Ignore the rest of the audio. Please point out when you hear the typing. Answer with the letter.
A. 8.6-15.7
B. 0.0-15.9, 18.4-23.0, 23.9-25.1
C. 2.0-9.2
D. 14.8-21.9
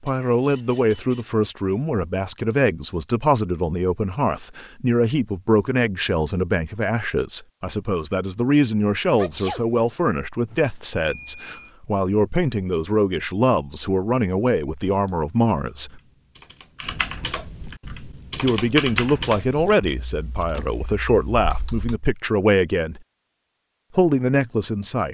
D.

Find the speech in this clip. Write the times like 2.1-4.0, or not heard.
0.0-15.9, 18.4-23.0, 23.9-25.1.